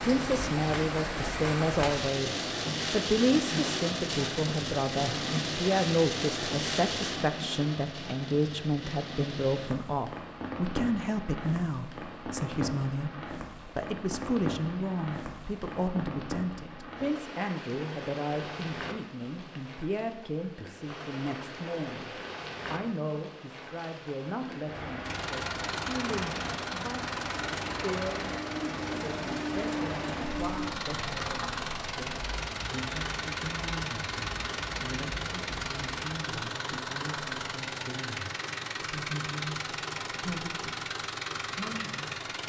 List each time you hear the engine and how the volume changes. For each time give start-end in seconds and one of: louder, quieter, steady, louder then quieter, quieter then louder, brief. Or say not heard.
25.0-42.4 steady.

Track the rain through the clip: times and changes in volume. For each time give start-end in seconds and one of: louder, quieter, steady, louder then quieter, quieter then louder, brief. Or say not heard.
0.0-36.0 quieter.